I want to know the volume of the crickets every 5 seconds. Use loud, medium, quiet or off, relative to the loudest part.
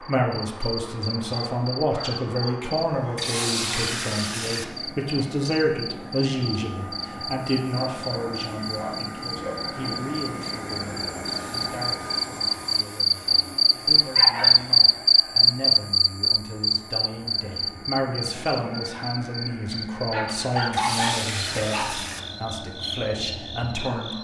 quiet, quiet, loud, loud, quiet.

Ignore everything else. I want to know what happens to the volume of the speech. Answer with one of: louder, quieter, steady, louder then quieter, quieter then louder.
quieter then louder.